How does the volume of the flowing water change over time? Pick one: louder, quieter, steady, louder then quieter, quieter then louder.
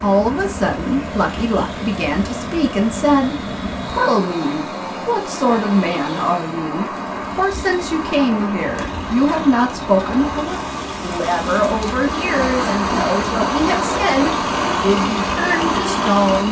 louder.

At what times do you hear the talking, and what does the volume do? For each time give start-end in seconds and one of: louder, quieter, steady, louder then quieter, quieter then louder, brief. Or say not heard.
0.0-16.4 steady.